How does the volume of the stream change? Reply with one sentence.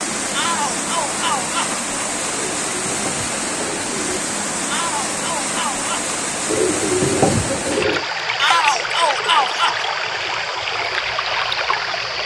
The volume of the stream stays about the same.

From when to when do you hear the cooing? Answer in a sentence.
The cooing can be heard from 2.3 to 4.2 s and from 6.5 to 8.1 s.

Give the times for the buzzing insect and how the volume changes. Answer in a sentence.
The buzzing insect can't be heard in this clip.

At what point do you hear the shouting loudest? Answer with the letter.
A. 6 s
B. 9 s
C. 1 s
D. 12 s
B.